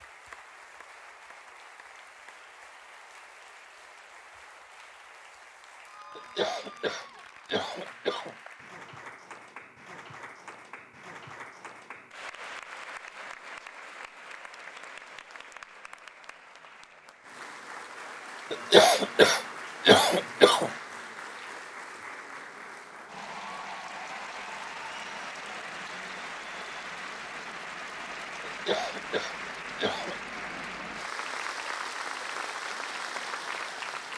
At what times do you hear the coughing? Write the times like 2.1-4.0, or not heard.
6.2-8.3, 18.5-20.7, 28.4-30.4.